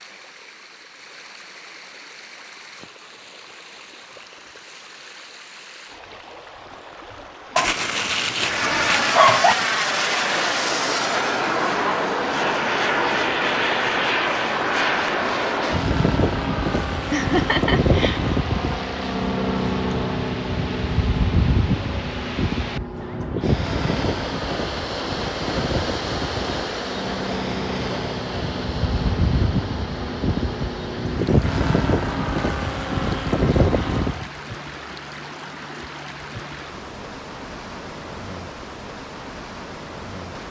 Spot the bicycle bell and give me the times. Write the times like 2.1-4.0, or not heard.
not heard.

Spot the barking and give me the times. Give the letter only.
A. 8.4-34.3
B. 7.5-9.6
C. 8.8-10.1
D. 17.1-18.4
B.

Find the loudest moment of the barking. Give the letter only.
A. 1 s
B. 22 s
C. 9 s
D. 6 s
C.